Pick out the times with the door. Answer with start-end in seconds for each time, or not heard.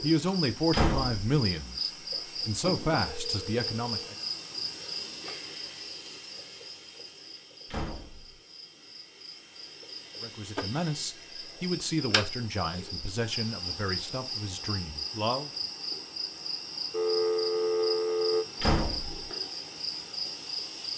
0.7-1.2, 7.7-8.4, 18.6-19.3.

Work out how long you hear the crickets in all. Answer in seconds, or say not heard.
21 s.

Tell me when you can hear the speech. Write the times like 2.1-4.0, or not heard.
0.0-4.2, 10.2-15.5.